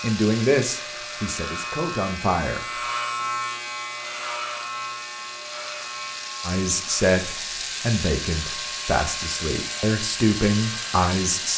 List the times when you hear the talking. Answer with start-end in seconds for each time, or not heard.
0.0-2.6, 6.5-11.5.